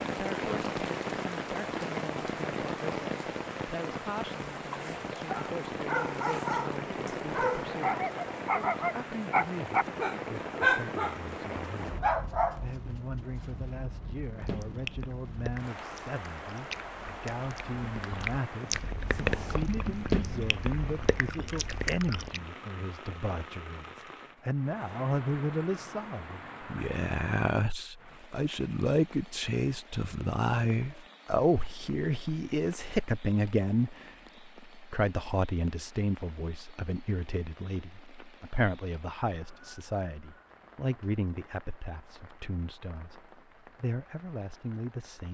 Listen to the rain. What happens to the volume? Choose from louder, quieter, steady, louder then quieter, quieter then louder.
quieter.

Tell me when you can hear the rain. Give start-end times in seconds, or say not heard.
0.0-45.2.